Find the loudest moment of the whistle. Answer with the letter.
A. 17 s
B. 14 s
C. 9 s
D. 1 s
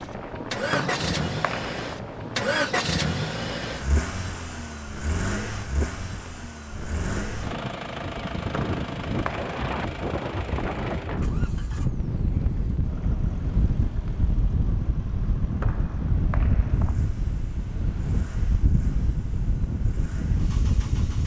D.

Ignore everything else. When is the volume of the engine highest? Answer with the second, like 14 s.
3 s.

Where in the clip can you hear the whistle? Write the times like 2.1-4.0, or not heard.
0.7-1.9, 8.5-9.6, 15.6-16.9.